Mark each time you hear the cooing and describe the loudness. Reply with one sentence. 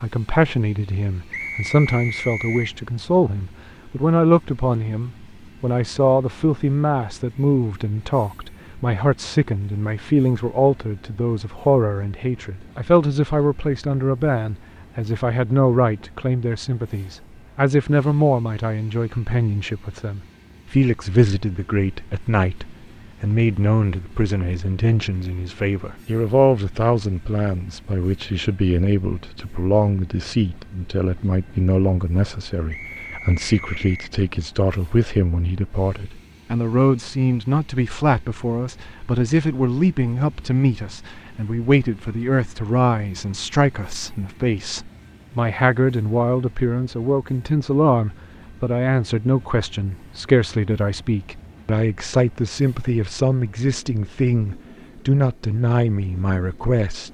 The cooing can't be heard in this clip.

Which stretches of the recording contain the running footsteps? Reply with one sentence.
You can't hear the running footsteps here.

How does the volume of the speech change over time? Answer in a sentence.
The volume of the speech stays about the same.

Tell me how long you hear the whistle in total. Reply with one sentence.
The whistle can be heard for 3 seconds in total.